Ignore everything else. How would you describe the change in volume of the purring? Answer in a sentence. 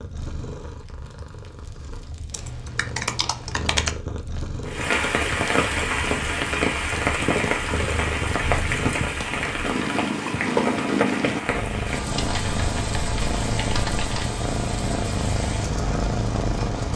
The loudness of the purring goes up.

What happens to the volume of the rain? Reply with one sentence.
The loudness of the rain goes down.